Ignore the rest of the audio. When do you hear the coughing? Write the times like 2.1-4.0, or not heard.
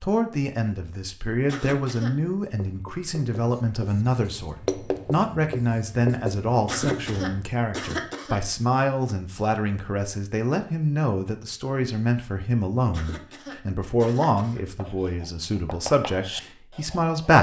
1.4-2.1, 6.7-8.4, 12.9-14.6.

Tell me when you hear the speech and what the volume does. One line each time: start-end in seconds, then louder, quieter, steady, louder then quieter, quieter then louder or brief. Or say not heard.
0.0-17.3 steady.